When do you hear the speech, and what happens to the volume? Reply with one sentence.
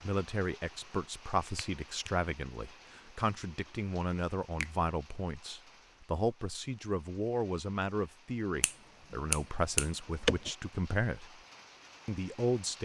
You can hear the speech from 0.0 to 11.3 s, at a steady volume; and briefly from 12.1 to 12.7 s.